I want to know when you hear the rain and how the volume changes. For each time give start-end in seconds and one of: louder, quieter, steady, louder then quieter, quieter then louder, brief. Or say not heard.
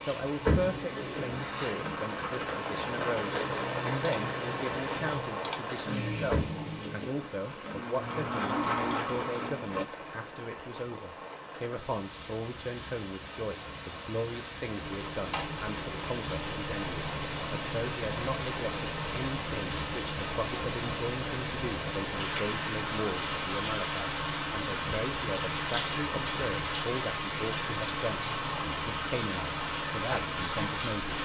0.0-31.2 quieter then louder.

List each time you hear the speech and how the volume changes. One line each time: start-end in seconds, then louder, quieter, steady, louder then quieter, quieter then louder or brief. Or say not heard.
0.0-31.2 steady.